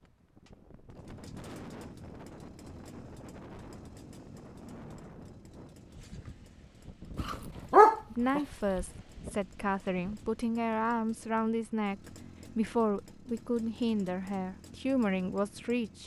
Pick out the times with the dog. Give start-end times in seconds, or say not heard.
7.2-8.8.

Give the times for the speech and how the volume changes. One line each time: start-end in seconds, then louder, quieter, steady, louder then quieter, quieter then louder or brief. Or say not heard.
8.1-16.0 steady.